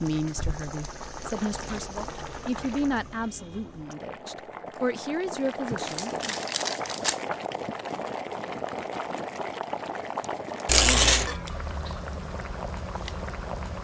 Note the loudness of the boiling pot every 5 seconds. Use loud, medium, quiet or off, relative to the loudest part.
medium, loud, loud.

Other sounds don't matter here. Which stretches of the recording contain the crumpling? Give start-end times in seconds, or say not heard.
1.4-2.9, 5.7-7.2, 10.7-11.3.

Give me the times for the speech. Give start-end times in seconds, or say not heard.
0.0-6.3.